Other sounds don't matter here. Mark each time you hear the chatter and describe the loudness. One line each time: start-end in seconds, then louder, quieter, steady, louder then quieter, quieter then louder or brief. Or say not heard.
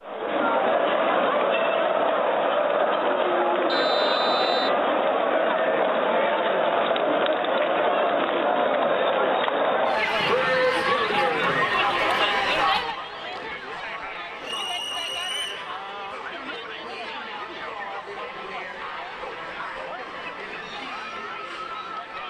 0.0-22.2 quieter.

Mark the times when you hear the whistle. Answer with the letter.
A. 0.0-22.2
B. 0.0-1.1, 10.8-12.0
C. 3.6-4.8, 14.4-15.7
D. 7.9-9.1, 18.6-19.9
C.